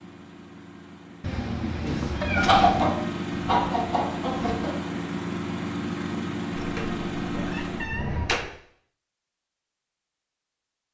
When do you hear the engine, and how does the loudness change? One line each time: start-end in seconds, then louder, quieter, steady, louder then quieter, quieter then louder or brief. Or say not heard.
0.0-8.6 louder.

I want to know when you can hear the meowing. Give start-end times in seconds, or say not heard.
1.2-3.0, 6.5-8.5.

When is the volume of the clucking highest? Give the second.
3 s.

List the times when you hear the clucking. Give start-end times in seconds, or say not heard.
1.9-4.8.